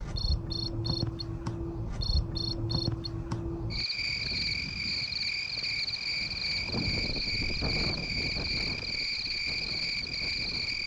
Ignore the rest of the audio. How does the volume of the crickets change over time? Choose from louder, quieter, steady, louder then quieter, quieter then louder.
steady.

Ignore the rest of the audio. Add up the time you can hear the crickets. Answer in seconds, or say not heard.
11 s.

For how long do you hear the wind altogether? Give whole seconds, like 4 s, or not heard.
7 s.